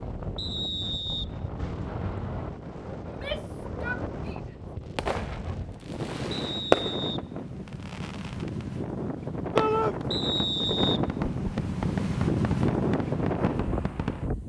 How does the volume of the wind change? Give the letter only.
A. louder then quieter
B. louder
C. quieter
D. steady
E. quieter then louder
B.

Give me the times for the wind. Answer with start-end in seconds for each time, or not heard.
0.0-14.4.